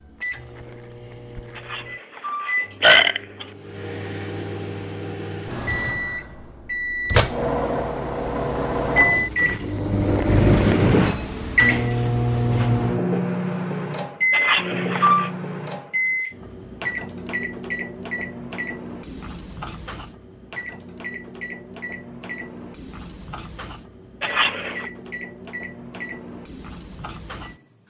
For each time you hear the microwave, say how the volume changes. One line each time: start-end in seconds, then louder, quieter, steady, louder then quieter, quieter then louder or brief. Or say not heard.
0.0-27.8 louder then quieter.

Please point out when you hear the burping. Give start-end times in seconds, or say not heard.
1.6-3.5, 14.3-15.3, 24.2-24.9.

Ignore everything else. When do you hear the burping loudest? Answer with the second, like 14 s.
3 s.